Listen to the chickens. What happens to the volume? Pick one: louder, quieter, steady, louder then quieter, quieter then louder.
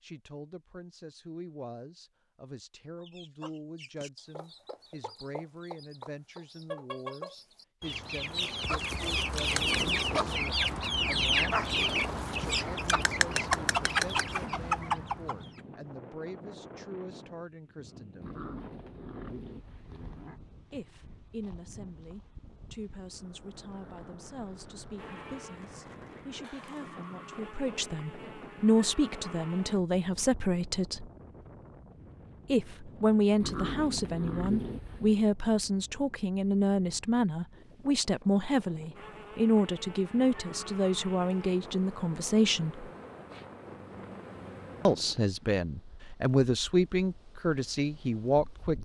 louder.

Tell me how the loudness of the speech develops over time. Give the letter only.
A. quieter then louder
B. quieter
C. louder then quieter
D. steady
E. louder
E.